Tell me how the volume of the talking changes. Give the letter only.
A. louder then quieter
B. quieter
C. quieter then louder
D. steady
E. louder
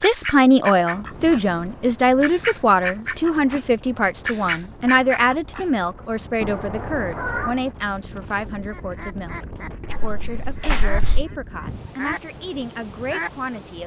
B.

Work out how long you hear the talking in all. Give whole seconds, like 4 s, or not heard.
14 s.